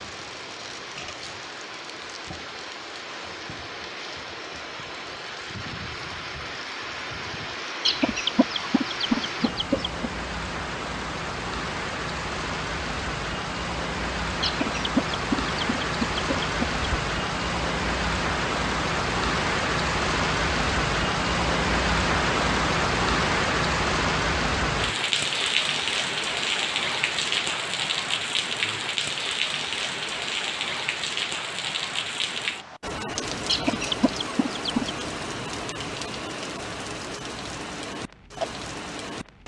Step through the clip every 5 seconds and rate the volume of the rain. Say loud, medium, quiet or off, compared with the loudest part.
quiet, medium, medium, loud, loud, loud, medium, medium.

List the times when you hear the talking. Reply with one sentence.
The talking can't be heard in this clip.